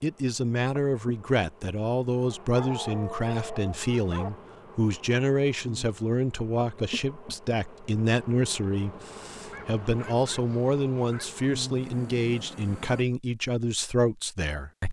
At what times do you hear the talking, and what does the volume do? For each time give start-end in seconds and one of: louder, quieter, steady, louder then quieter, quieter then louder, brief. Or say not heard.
0.0-14.8 steady.